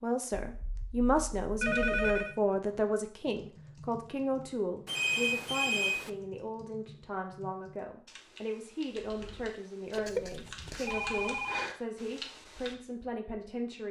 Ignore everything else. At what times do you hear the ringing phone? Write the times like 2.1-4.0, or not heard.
0.5-2.4, 4.8-6.1, 9.9-11.7.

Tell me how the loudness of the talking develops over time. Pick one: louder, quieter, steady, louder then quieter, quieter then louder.
quieter.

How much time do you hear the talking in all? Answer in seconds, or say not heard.
14 s.